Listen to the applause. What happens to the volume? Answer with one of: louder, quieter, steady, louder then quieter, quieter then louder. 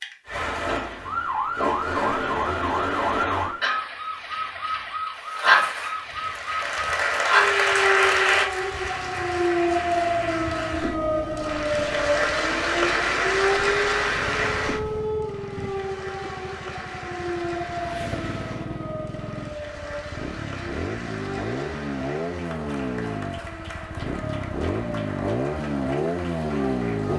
quieter.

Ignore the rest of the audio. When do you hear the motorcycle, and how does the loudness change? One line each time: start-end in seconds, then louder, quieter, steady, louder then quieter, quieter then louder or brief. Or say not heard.
8.6-27.1 louder.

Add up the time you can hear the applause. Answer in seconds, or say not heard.
22 s.